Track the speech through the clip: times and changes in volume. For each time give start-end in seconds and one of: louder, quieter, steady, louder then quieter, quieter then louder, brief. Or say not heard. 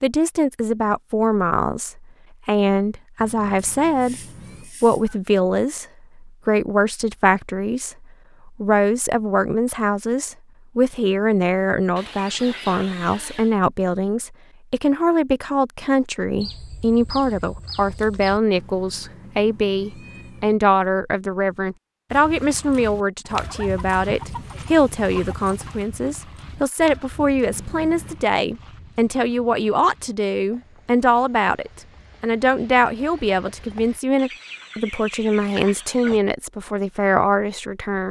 0.0-4.2 quieter then louder
4.8-38.0 steady.